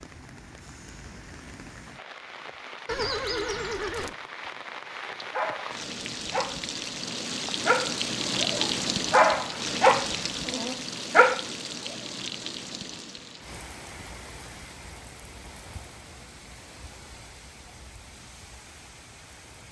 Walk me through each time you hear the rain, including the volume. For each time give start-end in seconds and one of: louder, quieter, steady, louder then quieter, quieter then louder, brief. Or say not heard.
0.0-19.6 louder then quieter.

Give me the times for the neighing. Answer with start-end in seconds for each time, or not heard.
2.9-4.2.